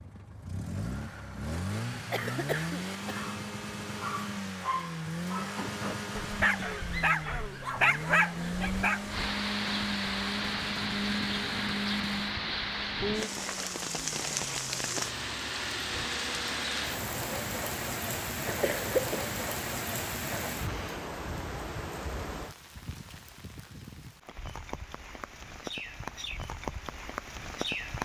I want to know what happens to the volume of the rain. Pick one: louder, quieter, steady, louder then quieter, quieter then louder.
quieter.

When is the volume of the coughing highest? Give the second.
19 s.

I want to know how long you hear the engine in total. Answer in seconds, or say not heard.
17 s.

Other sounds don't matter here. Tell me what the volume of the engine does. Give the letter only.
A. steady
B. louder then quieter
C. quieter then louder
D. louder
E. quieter
E.